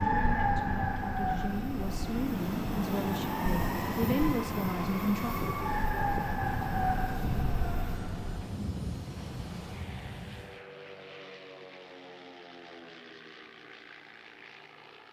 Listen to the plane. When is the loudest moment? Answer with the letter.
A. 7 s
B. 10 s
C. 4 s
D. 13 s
C.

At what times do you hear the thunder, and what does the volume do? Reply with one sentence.
The thunder can be heard from 6.4 to 10.6 s, getting quieter.